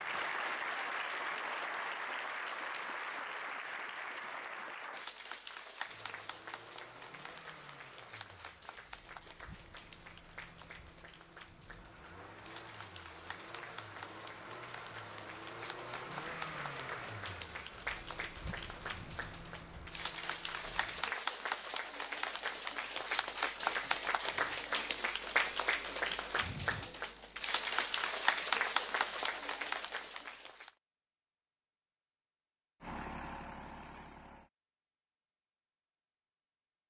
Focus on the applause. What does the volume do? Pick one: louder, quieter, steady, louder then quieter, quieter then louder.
quieter then louder.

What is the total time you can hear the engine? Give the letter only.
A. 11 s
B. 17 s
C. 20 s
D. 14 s
B.